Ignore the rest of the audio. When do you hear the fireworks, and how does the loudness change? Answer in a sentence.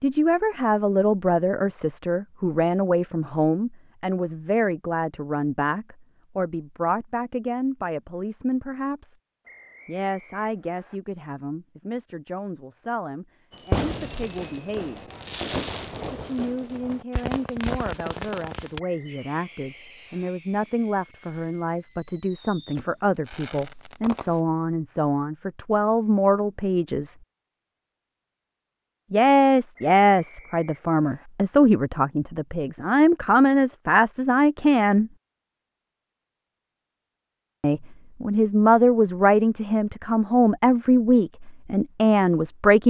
You can hear the fireworks from 13.5 to 24.4 s, getting quieter.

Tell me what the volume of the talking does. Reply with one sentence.
The loudness of the talking goes down, then up.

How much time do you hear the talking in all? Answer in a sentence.
The talking can be heard for 37 seconds in total.